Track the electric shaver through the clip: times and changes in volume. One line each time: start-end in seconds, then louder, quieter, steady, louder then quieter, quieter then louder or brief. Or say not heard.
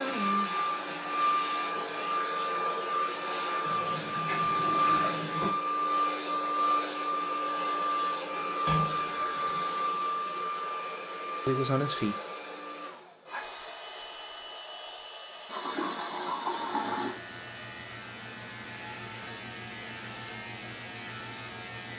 16.5-21.9 steady.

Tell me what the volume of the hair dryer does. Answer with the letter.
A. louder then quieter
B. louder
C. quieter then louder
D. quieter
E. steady
D.